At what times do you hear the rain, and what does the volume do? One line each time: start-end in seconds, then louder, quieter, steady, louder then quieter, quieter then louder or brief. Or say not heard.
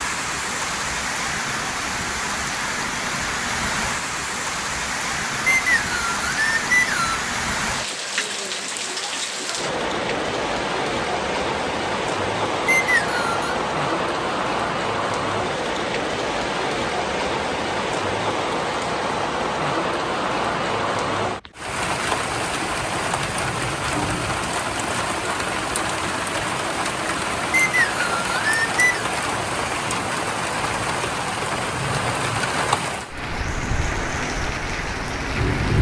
0.0-35.7 steady.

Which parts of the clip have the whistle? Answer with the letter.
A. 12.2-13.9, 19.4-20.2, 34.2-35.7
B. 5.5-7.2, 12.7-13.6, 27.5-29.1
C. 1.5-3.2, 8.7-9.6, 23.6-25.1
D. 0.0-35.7
B.